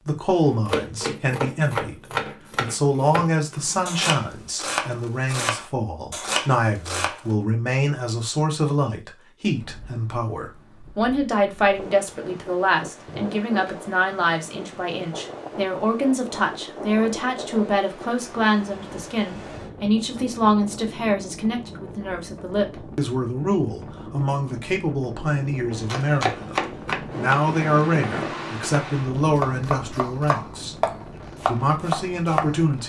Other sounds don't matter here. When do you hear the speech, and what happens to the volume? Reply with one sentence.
You can hear the speech from 0.1 to 32.8 s, at a steady volume.